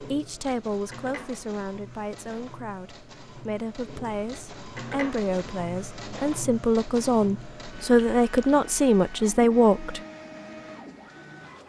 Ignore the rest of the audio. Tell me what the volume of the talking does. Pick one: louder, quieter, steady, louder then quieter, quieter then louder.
louder.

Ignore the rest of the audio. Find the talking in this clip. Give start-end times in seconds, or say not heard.
0.1-10.0.